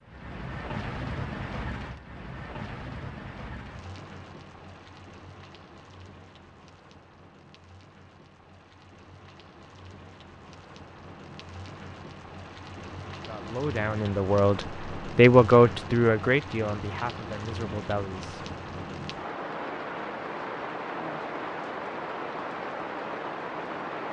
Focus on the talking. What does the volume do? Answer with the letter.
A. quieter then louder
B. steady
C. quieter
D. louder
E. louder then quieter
E.